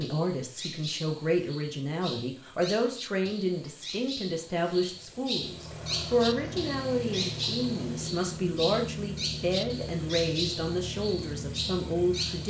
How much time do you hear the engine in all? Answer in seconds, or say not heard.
7 s.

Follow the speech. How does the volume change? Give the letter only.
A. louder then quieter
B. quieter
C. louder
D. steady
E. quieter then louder
D.